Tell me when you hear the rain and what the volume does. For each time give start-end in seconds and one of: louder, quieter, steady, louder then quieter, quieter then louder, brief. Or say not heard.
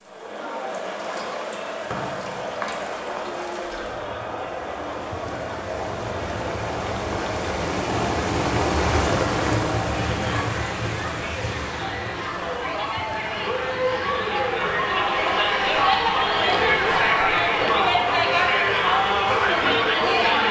0.0-20.4 louder then quieter.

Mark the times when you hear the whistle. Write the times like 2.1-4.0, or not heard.
1.9-3.4.